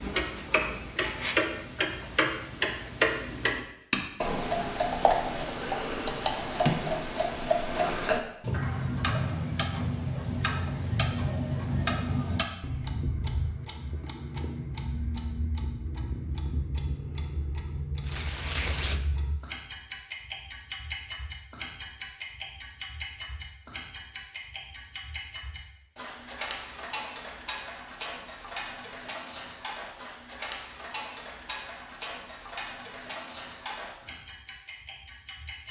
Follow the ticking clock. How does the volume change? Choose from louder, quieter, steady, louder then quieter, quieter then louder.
quieter.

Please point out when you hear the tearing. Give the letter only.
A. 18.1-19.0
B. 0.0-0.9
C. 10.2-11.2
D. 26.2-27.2
A.